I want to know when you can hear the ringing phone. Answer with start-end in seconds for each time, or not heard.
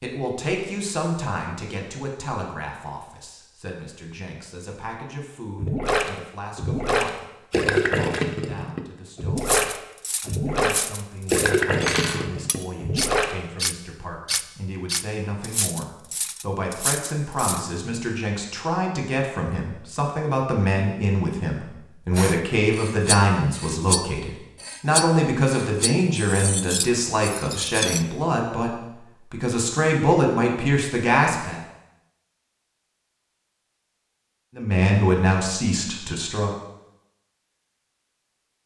not heard.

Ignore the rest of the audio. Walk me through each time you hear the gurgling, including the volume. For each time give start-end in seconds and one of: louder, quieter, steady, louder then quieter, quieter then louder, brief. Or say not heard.
5.5-13.3 steady.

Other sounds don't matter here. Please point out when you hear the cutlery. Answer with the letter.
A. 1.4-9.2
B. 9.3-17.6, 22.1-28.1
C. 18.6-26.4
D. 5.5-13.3
B.